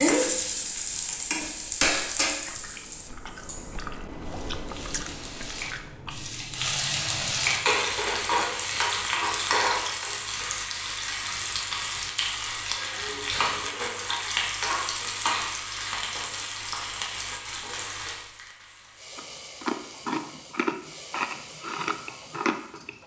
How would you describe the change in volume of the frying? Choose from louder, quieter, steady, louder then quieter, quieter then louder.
quieter.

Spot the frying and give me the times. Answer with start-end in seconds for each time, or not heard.
0.0-23.0.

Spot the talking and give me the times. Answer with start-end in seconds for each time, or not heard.
not heard.